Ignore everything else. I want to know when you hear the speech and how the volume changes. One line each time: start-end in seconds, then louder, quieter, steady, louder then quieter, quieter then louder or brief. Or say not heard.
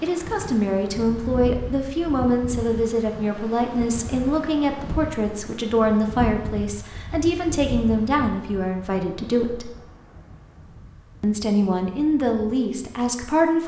0.0-9.7 steady
11.2-13.6 brief.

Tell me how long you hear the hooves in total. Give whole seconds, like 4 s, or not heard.
not heard.